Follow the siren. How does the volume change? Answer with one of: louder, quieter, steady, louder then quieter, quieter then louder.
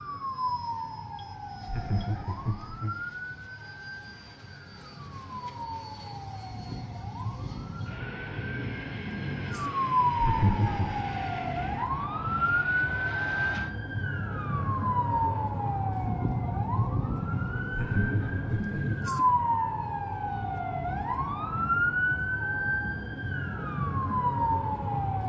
louder.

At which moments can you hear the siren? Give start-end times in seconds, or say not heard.
0.0-25.2.